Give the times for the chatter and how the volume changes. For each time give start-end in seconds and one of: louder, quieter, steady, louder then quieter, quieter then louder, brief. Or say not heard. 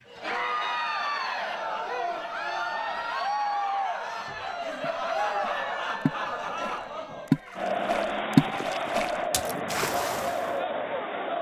0.1-11.3 steady.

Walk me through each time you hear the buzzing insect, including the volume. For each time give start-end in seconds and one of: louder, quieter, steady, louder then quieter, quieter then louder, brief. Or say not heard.
not heard.